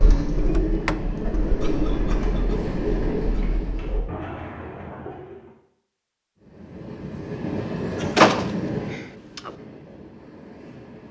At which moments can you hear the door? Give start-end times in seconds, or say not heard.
0.3-1.1, 8.2-9.6.